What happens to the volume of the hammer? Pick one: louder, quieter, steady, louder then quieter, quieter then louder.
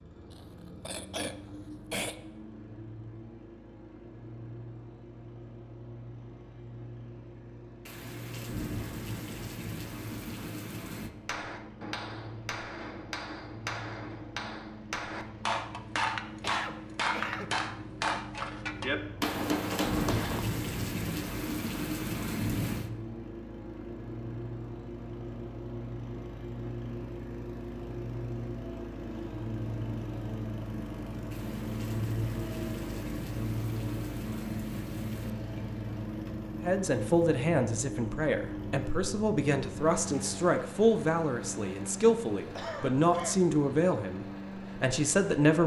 louder.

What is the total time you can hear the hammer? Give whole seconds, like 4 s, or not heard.
9 s.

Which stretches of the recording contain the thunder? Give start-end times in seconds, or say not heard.
7.8-11.1, 19.2-22.9, 31.3-35.4.